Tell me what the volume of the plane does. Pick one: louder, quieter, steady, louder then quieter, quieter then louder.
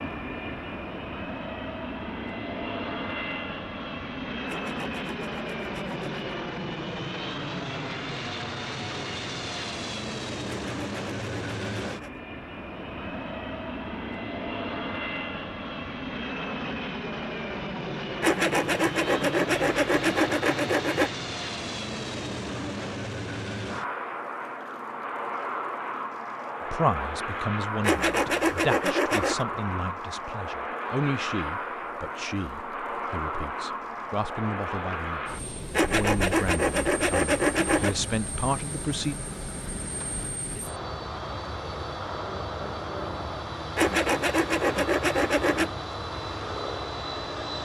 steady.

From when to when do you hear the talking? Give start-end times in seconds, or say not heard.
26.7-39.1.